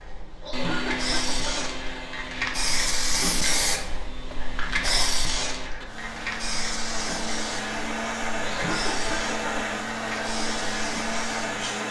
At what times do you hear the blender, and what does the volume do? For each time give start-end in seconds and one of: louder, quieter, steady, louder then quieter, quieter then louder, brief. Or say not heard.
0.0-11.8 quieter then louder.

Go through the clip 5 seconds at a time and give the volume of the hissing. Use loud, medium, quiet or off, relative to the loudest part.
loud, loud, medium.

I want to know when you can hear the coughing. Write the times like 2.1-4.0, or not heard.
0.4-1.6, 8.4-9.7.